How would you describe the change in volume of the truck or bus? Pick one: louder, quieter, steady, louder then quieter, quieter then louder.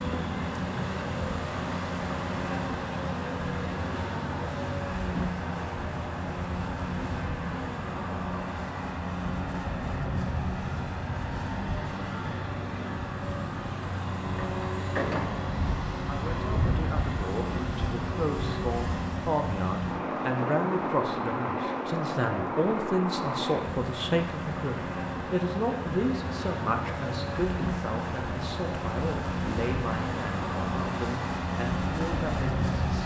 steady.